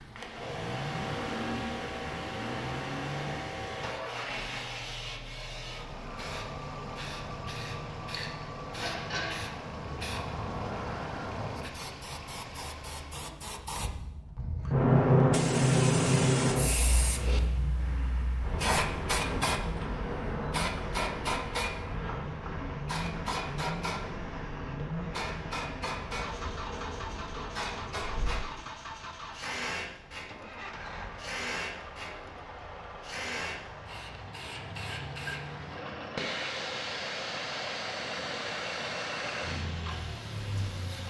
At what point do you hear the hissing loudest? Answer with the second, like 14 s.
15 s.